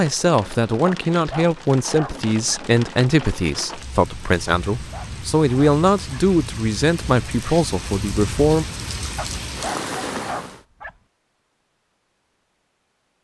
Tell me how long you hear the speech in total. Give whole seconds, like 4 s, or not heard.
9 s.